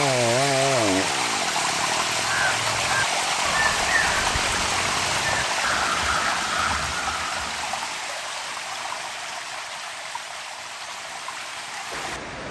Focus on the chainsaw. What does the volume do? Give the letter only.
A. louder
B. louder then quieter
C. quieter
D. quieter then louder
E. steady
C.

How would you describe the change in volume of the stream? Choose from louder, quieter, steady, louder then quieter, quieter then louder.
quieter.